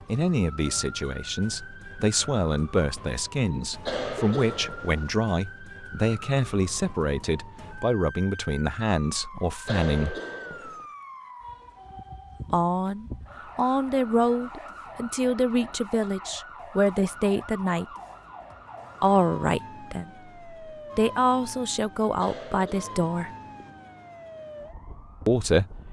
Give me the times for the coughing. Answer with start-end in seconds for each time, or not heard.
3.8-5.2, 9.7-10.8, 22.1-23.7.